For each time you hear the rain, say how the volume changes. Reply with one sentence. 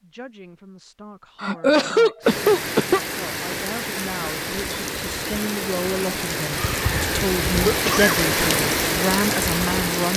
The rain can be heard from 2.2 to 10.1 s, getting louder.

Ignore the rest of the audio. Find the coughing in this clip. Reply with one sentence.
You can hear the coughing from 1.4 to 3.0 s and from 7.6 to 8.2 s.